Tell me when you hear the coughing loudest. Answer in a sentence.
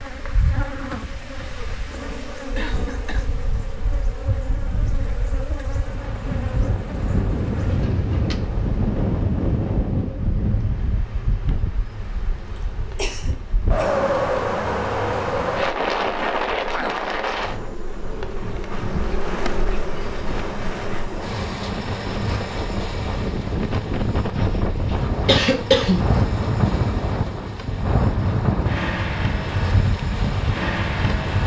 The loudest moment of the coughing is at 26 seconds.